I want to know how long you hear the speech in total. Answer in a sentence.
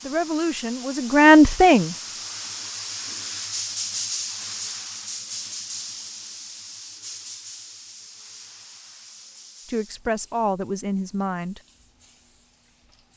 You can hear the speech for 4 seconds altogether.